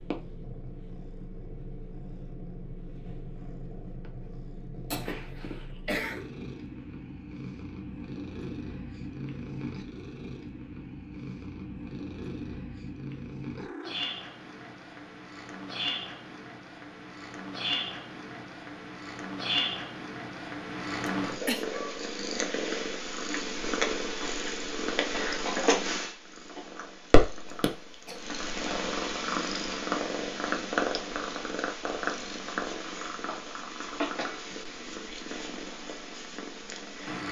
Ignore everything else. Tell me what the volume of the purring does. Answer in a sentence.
The loudness of the purring goes up.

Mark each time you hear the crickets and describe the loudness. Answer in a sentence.
The crickets can't be heard in this clip.